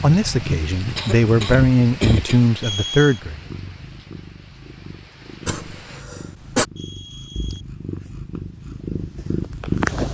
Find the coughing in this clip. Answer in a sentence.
You can hear the coughing from 0.9 to 2.4 s and from 5.5 to 6.7 s.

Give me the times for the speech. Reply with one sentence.
You can hear the speech from 0.0 to 3.5 s.